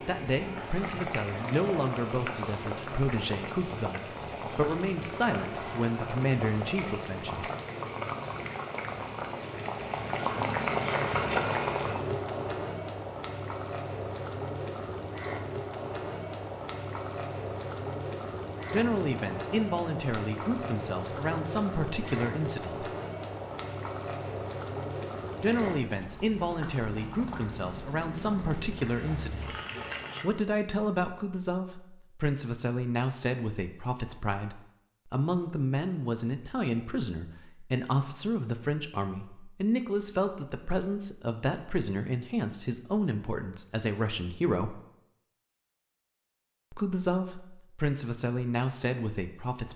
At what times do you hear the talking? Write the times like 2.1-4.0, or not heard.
0.1-7.5, 18.7-22.9, 25.4-29.6, 30.2-44.8, 46.7-49.7.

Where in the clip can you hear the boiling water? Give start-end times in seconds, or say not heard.
0.0-30.2.